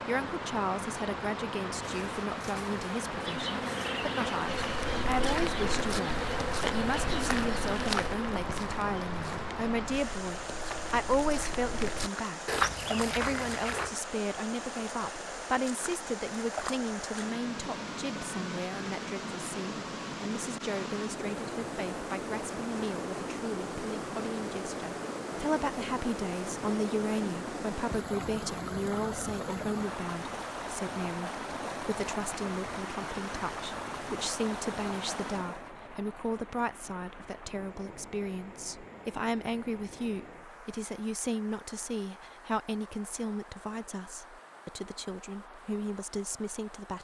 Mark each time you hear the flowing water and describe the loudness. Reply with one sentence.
You can hear the flowing water from 0.0 to 46.9 s, getting quieter.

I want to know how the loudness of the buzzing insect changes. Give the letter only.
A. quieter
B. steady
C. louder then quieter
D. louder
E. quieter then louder
D.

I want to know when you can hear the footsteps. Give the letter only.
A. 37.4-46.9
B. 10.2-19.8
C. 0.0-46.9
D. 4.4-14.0
D.